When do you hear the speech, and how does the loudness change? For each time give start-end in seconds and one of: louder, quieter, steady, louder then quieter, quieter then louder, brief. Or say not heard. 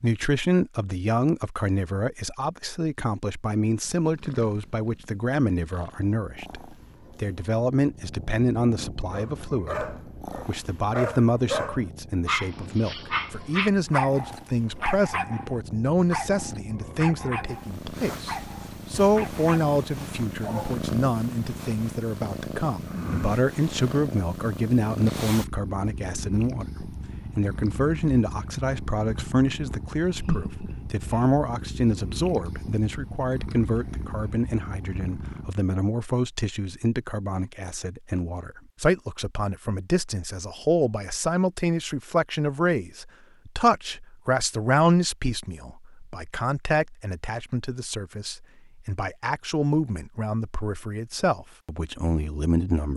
0.0-52.9 steady.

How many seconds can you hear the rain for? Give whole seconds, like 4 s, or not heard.
not heard.